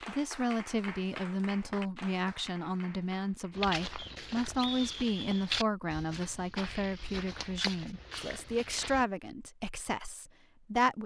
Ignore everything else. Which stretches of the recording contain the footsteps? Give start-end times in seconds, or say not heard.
3.5-9.1.